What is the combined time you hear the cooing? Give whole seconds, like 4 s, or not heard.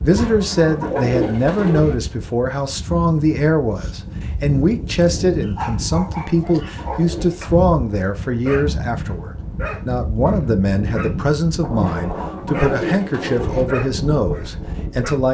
5 s.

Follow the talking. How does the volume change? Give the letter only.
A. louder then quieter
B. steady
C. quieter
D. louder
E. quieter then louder
B.